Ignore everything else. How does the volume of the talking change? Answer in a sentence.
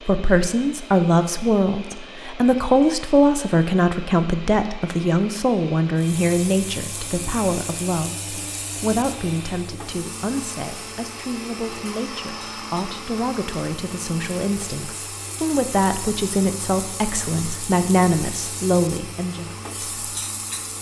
The volume of the talking goes down, then up.